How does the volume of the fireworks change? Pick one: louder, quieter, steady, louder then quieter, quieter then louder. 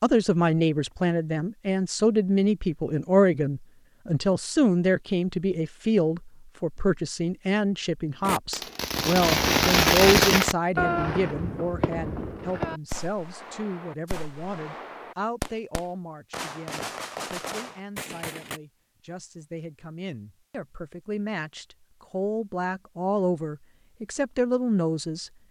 quieter.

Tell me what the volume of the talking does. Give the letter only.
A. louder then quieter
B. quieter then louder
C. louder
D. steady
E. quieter
B.